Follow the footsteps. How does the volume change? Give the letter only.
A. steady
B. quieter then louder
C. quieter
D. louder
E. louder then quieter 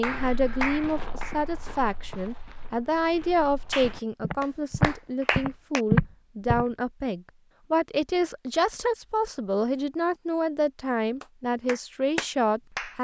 B.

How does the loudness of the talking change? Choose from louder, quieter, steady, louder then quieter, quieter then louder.
steady.